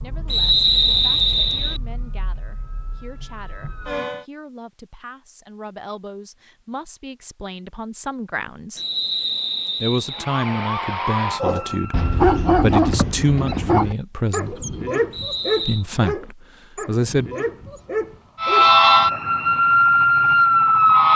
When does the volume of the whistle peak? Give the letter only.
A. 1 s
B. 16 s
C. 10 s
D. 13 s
A.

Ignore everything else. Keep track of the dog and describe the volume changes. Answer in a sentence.
The loudness of the dog goes down.